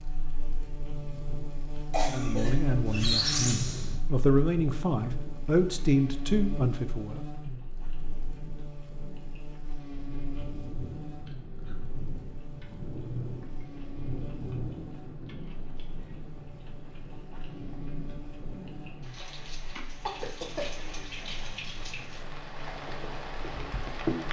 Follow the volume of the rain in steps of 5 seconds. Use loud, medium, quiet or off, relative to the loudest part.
medium, medium, loud, medium, loud.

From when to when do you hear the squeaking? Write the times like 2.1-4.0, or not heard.
2.9-4.0.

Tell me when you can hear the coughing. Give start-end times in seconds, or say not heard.
1.9-2.9, 20.1-20.6.